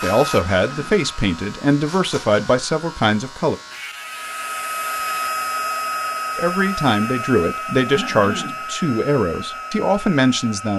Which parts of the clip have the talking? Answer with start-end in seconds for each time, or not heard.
0.0-3.5, 6.3-10.7.